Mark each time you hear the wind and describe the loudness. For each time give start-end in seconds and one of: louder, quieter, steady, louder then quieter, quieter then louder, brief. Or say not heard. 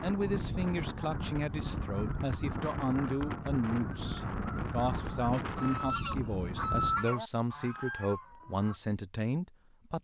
0.0-7.0 steady.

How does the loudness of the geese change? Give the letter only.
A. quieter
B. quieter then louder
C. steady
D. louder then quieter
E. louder
D.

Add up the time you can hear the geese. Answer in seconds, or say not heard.
8 s.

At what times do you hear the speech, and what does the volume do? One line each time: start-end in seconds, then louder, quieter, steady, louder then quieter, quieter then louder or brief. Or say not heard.
0.0-9.9 steady.